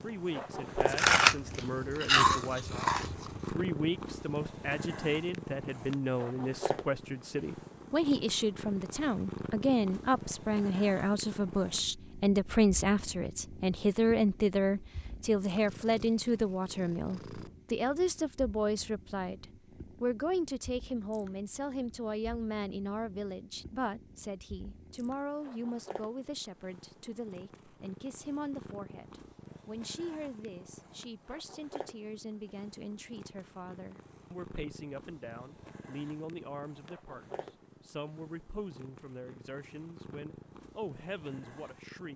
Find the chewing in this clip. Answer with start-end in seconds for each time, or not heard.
0.8-3.4.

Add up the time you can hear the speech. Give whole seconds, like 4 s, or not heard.
42 s.